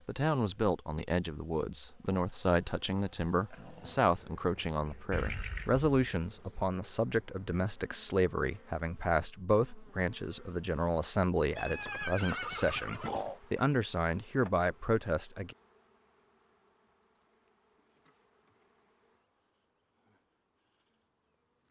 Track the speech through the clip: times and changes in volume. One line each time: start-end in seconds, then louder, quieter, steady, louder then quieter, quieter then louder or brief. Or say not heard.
0.1-15.6 steady.